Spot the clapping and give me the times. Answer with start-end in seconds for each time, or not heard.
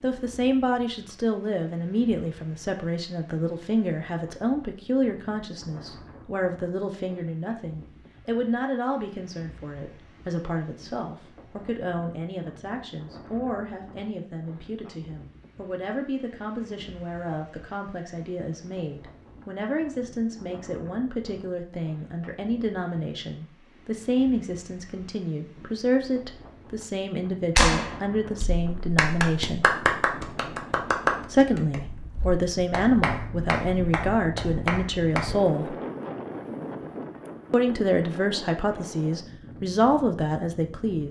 27.6-35.5.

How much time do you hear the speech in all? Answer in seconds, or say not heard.
38 s.